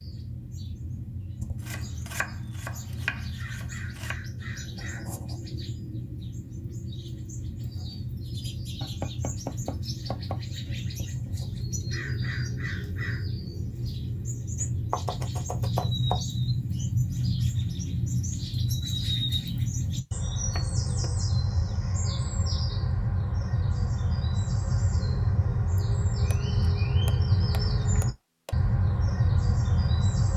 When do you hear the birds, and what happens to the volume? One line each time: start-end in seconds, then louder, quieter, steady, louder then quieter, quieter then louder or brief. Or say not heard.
0.0-30.3 louder.